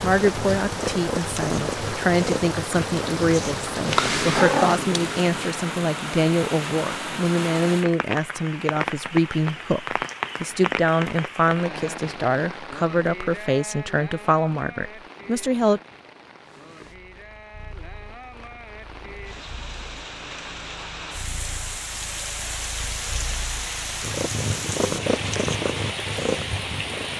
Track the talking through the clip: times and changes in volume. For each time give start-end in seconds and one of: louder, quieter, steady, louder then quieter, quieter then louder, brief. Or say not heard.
0.0-15.8 steady.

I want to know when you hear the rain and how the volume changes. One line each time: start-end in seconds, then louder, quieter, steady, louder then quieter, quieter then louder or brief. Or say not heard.
0.0-27.1 quieter then louder.